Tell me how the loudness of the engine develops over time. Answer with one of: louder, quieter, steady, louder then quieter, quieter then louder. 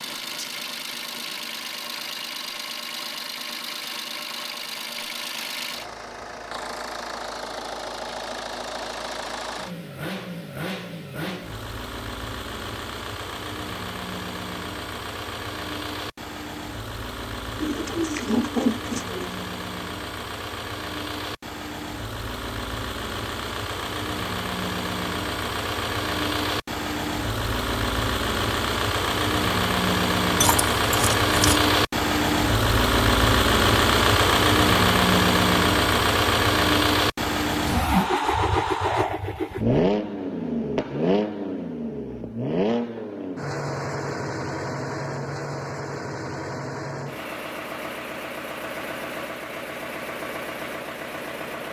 louder then quieter.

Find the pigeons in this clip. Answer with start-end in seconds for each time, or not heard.
17.6-19.4.